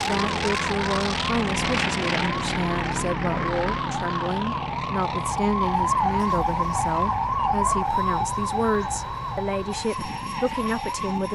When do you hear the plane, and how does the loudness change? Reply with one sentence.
You can hear the plane from 0.0 to 11.2 s, getting quieter.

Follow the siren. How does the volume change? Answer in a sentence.
The loudness of the siren goes up, then down.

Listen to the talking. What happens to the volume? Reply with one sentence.
The volume of the talking stays about the same.